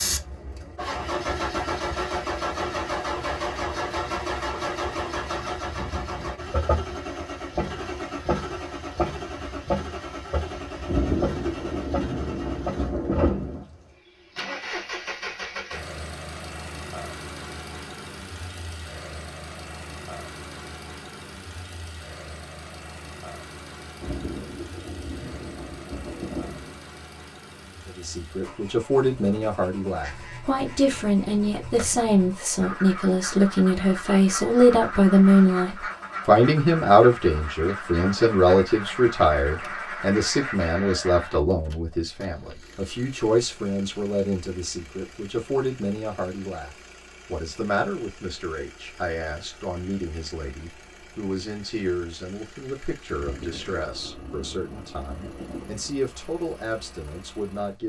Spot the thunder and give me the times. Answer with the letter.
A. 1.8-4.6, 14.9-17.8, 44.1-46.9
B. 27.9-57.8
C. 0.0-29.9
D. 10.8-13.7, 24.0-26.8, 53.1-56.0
D.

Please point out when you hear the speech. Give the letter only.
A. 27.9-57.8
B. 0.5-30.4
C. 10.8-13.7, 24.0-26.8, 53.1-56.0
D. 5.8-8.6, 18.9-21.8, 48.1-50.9
A.